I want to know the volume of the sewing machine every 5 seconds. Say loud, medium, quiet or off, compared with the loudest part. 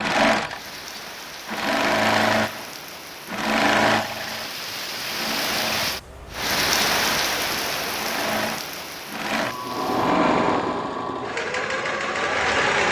loud, medium, loud.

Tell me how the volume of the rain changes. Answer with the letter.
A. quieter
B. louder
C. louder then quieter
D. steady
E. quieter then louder
C.